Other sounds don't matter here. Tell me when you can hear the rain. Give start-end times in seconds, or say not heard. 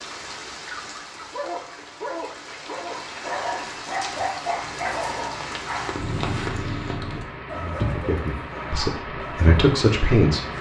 0.0-7.0.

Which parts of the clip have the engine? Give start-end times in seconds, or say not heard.
4.5-10.5.